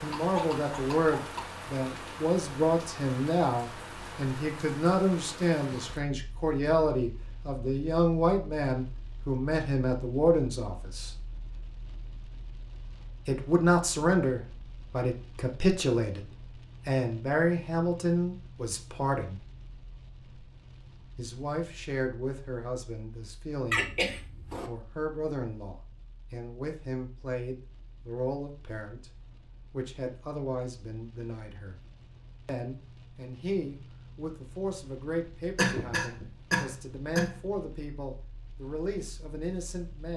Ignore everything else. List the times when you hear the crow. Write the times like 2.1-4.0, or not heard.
not heard.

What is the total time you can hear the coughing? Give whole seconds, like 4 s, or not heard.
4 s.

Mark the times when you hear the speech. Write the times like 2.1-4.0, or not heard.
0.0-11.2, 13.2-19.4, 21.1-24.0, 24.6-29.1, 29.7-31.8, 32.5-40.1.